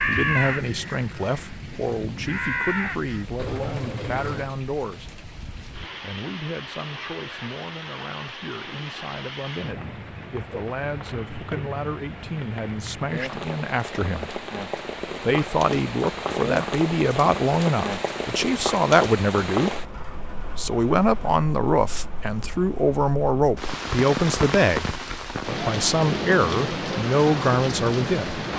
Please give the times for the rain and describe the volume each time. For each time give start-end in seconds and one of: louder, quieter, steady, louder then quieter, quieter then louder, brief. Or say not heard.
0.0-28.5 louder.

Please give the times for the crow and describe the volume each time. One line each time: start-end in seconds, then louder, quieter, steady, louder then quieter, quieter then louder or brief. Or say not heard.
0.0-4.5 quieter then louder.